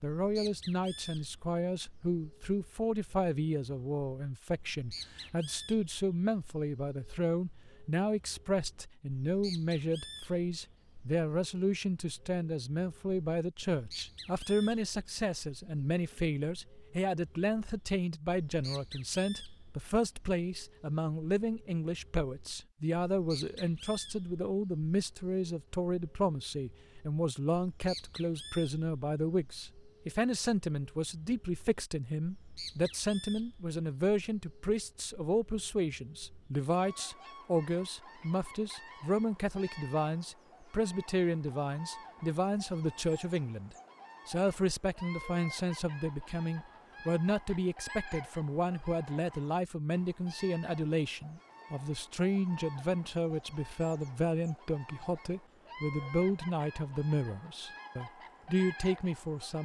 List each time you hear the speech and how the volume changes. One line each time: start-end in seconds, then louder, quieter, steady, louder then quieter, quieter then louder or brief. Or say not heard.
0.0-59.6 steady.